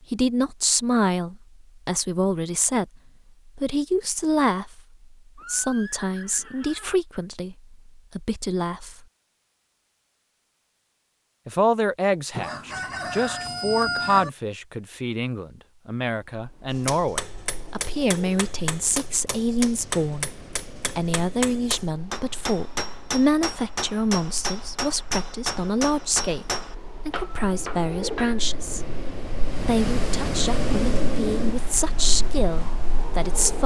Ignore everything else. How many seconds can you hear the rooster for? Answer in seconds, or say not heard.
2 s.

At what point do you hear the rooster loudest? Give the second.
14 s.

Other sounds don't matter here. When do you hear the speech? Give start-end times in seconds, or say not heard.
0.1-9.1, 11.4-28.9, 29.6-33.6.